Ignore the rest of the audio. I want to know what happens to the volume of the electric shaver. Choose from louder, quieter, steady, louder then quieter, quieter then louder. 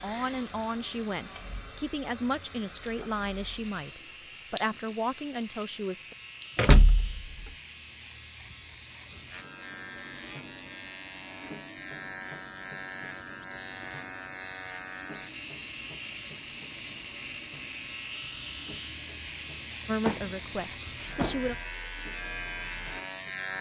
louder.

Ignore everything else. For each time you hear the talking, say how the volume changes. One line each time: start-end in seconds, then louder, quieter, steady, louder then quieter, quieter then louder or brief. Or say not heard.
0.0-6.2 steady
19.9-21.6 brief.